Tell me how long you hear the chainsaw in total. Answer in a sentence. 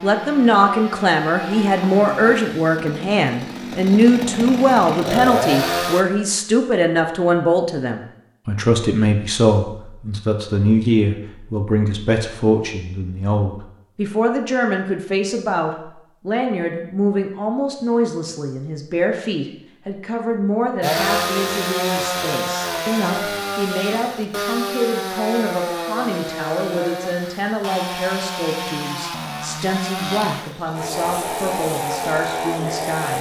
The chainsaw can be heard for 18 seconds in total.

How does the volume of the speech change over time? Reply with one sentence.
The volume of the speech goes down.